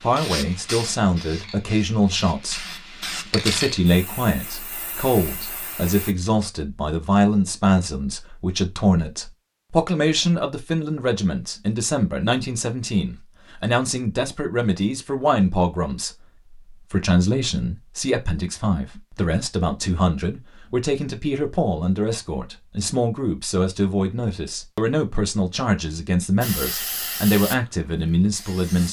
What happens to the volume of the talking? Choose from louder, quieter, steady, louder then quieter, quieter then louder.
steady.